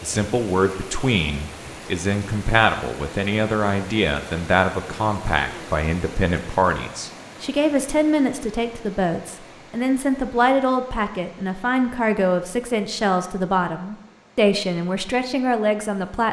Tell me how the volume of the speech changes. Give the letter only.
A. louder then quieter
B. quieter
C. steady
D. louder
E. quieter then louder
C.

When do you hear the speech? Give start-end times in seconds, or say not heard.
0.0-16.2.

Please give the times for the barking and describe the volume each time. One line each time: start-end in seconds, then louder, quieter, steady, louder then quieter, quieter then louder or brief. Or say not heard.
not heard.